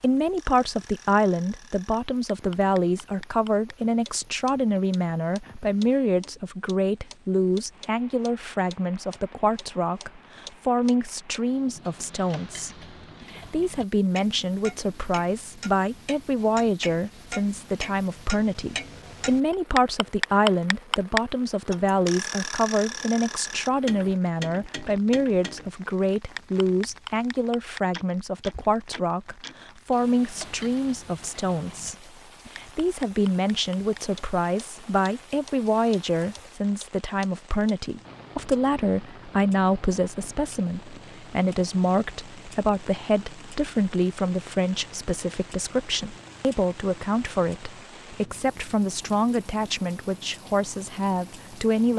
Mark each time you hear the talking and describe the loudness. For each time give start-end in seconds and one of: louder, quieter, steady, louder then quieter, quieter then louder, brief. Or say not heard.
0.0-51.9 steady.